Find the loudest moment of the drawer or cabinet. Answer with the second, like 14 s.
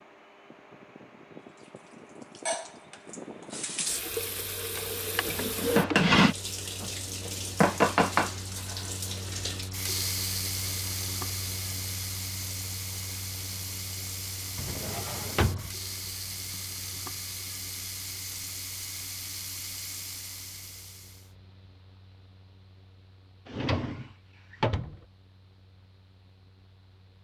6 s.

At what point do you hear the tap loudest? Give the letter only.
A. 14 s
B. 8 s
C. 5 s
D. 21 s
B.